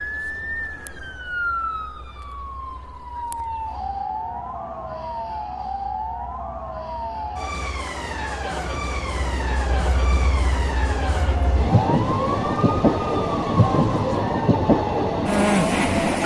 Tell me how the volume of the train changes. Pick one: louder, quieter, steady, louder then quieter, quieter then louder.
louder.